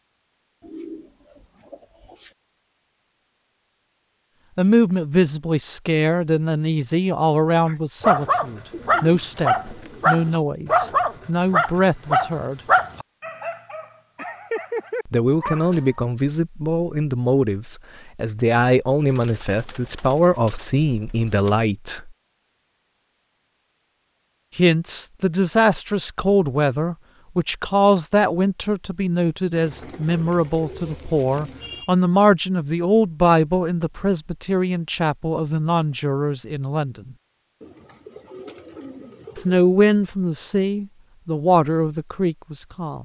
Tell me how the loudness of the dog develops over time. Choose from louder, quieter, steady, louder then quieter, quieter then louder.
quieter.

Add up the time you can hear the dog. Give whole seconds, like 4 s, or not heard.
8 s.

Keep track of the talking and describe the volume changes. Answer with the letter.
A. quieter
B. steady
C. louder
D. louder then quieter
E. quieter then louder
B.